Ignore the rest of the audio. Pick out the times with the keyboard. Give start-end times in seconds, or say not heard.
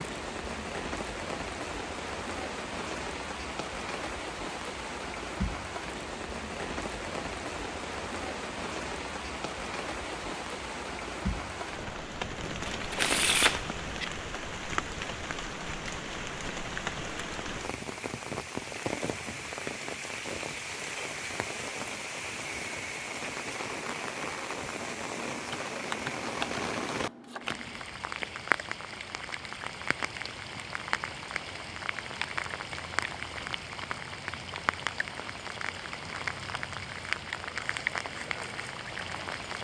not heard.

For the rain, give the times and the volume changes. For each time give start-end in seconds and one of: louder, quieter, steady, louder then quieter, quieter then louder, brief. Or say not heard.
0.0-39.6 steady.